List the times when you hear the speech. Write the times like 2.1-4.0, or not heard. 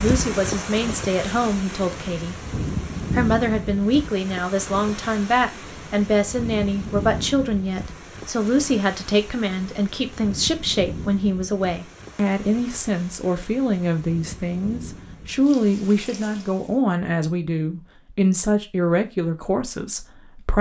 0.0-2.4, 3.1-20.5.